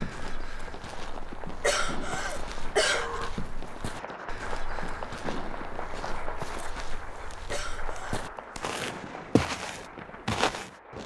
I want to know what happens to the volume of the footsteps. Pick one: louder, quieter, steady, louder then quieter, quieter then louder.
louder.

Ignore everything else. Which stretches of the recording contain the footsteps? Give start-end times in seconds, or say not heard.
0.0-10.8.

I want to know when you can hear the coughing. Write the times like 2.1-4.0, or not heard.
1.6-3.3, 7.5-8.2.